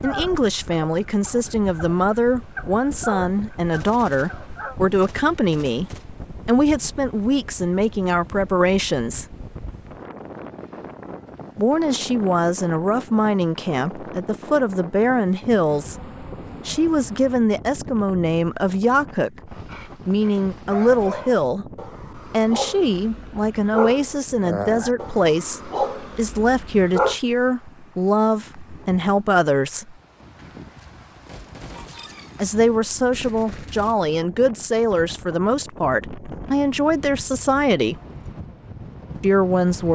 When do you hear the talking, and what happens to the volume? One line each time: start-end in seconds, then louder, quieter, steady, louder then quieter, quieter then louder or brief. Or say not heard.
0.0-9.2 steady
11.6-29.9 steady
32.4-38.0 steady
39.2-39.8 brief.